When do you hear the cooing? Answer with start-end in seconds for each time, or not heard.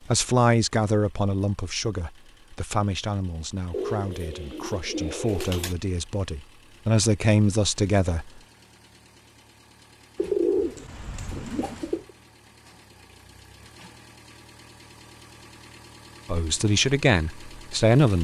3.7-5.8, 10.2-12.1.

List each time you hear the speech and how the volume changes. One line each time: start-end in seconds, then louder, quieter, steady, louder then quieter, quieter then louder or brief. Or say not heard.
0.1-8.3 quieter then louder
16.3-18.1 brief.